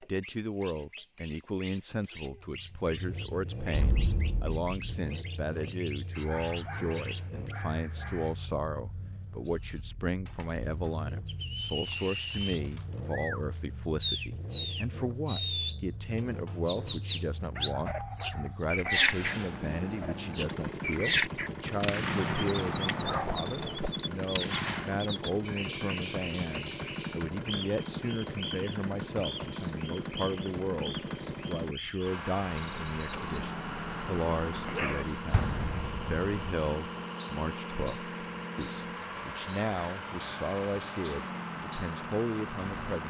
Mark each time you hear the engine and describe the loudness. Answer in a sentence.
The engine can be heard from 2.4 to 43.0 s, getting louder.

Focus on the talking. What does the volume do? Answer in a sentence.
The loudness of the talking stays about the same.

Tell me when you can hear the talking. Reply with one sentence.
You can hear the talking from 0.0 to 43.0 s.